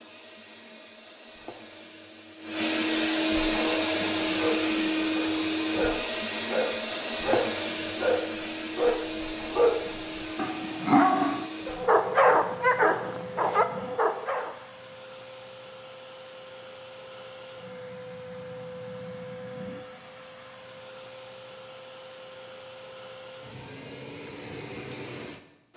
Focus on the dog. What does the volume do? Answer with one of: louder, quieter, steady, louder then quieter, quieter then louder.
louder.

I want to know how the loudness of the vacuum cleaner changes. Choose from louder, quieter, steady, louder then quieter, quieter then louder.
quieter.